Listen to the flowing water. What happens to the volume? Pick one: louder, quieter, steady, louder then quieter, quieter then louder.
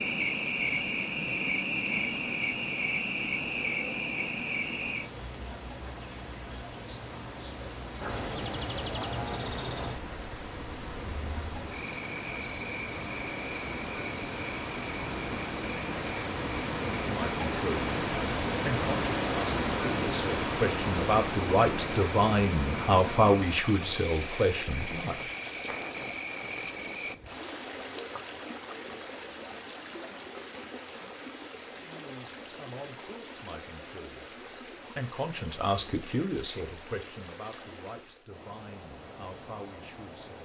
louder then quieter.